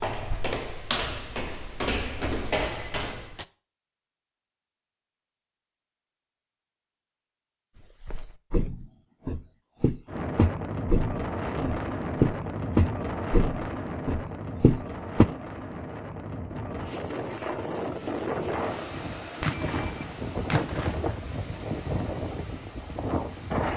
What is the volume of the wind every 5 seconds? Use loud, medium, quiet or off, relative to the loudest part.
off, off, loud, loud, loud.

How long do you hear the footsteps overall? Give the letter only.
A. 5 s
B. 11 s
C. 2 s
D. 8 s
B.